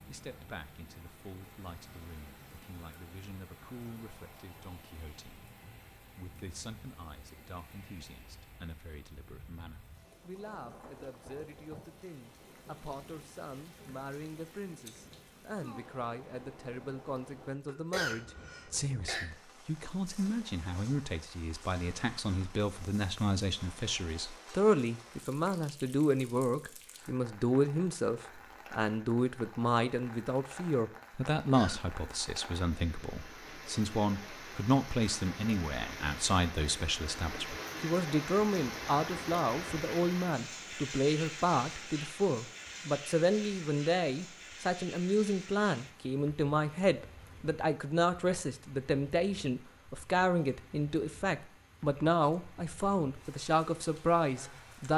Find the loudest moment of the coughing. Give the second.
18 s.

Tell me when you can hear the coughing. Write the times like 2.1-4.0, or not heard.
17.6-19.2, 31.4-31.8.